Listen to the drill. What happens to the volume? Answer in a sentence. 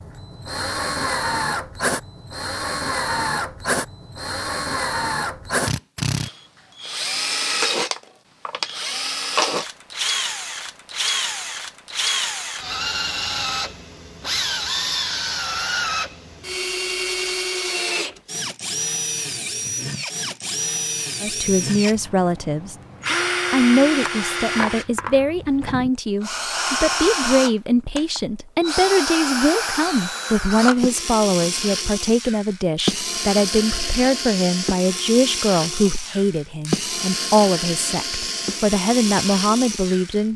The loudness of the drill stays about the same.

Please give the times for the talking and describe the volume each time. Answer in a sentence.
The talking can be heard briefly from 21.2 to 22.8 s; and from 23.5 to 40.3 s, at a steady volume.